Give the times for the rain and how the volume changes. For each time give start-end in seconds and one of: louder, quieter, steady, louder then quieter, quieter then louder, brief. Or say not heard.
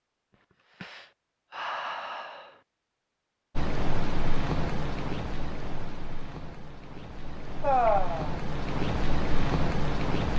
3.5-10.3 quieter then louder.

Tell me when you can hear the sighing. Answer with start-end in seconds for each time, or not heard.
0.8-2.5, 7.6-8.3.